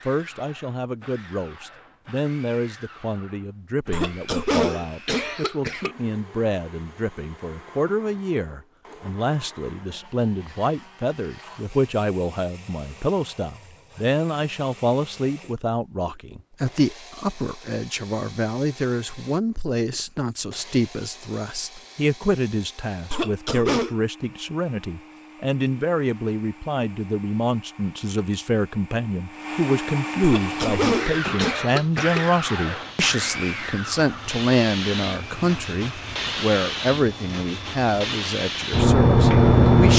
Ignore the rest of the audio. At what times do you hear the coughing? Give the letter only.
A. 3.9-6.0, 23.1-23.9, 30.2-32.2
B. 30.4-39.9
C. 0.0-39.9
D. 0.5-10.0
A.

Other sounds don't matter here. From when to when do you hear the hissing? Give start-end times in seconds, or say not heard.
30.4-39.9.